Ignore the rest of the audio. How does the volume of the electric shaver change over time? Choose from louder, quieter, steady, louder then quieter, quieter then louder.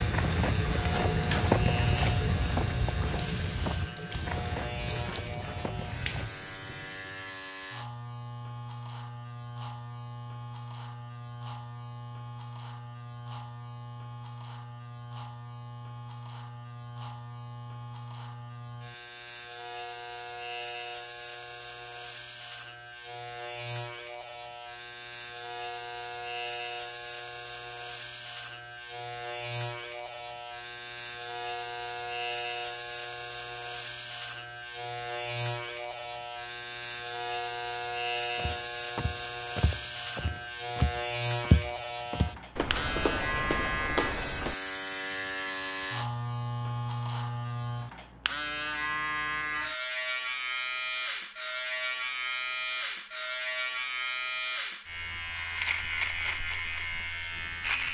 louder.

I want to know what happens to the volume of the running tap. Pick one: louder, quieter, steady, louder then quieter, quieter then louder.
quieter.